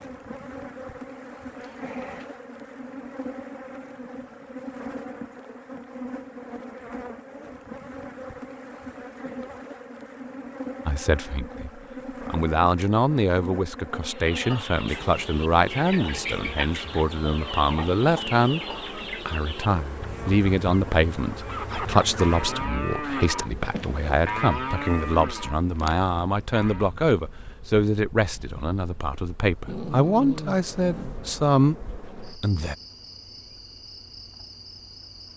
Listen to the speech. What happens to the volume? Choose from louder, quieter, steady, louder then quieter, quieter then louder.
steady.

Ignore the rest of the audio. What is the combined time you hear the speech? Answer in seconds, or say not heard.
22 s.